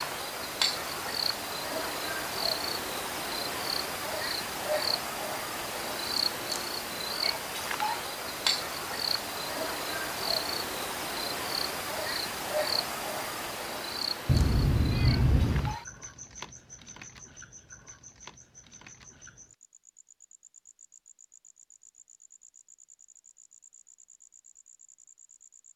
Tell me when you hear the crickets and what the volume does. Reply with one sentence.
You can hear the crickets from 0.0 to 25.7 s, getting quieter.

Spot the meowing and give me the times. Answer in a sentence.
You can hear the meowing from 14.2 to 15.8 s.